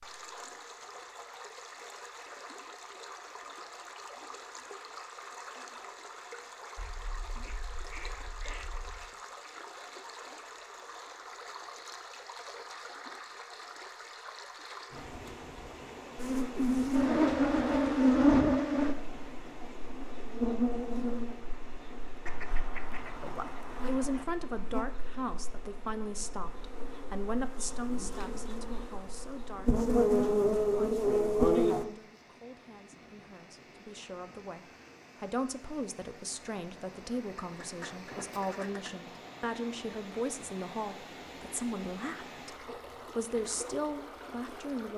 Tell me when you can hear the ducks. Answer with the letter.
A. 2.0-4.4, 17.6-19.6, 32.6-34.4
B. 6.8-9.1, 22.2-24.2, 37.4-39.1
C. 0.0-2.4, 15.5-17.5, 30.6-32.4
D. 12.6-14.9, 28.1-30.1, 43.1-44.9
B.